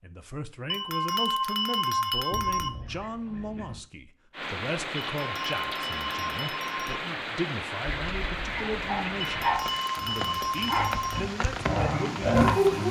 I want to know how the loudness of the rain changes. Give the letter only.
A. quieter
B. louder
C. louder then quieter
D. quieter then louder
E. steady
E.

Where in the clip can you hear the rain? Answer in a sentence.
The rain can be heard from 4.3 to 12.8 s.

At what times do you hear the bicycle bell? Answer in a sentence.
You can hear the bicycle bell from 0.7 to 2.7 s, from 5.0 to 7.0 s and from 9.2 to 11.2 s.